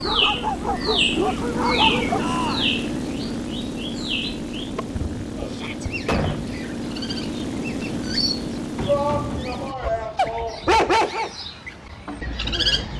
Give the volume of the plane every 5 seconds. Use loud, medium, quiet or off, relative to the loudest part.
loud, loud, off.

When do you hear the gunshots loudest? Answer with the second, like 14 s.
6 s.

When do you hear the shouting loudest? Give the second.
9 s.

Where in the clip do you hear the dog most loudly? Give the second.
11 s.